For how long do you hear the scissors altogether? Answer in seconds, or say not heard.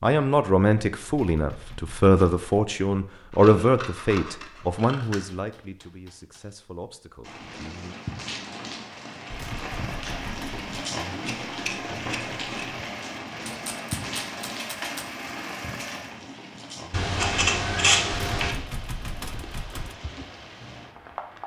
5 s.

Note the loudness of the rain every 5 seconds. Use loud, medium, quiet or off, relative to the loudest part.
off, loud, loud, medium, medium.